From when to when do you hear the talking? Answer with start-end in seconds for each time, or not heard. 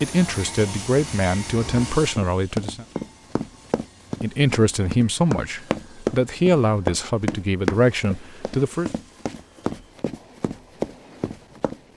0.0-2.9, 4.2-8.9.